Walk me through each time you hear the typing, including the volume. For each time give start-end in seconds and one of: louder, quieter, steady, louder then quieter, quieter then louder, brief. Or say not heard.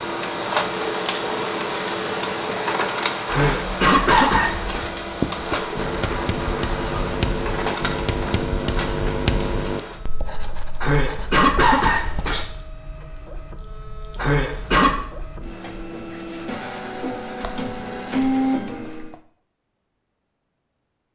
not heard.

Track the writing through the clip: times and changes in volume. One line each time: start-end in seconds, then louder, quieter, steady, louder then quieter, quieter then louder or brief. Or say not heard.
4.7-12.4 quieter.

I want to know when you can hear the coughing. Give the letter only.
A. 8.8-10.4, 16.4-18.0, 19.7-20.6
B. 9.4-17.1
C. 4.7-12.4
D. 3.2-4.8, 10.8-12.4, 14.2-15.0
D.